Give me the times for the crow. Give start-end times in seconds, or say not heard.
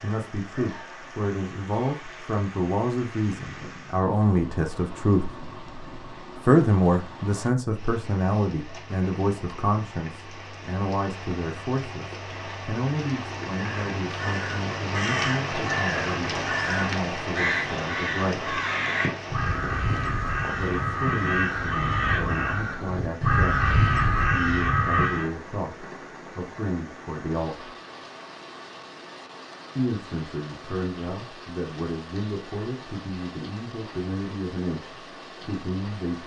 13.6-25.2.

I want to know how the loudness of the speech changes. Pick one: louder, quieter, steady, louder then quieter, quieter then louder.
quieter.